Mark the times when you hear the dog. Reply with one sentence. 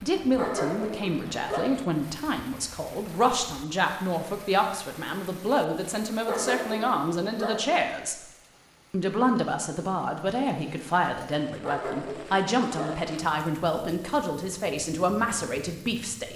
The dog can be heard from 0.3 to 1.8 s, from 6.2 to 7.8 s and from 11.6 to 13.2 s.